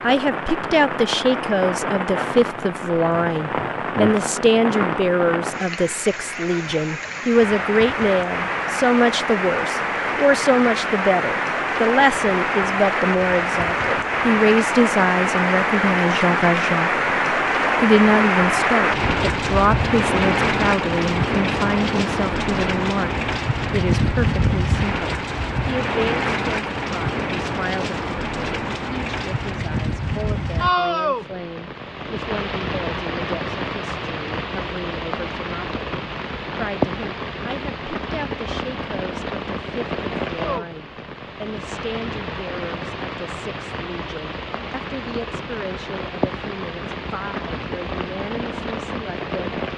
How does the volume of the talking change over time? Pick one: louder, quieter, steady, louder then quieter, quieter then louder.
quieter.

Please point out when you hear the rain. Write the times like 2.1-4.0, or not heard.
0.0-49.7.